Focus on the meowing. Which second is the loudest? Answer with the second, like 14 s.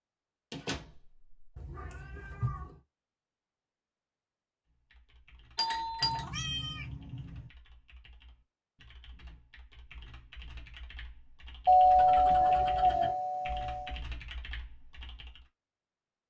13 s.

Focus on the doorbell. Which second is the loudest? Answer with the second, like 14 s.
12 s.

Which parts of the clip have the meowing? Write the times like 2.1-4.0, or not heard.
1.6-2.8, 6.0-7.5, 11.9-13.2.